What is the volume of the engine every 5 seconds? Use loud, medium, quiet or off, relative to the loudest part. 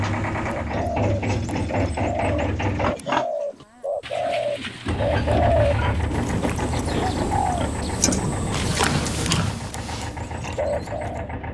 loud, loud, medium.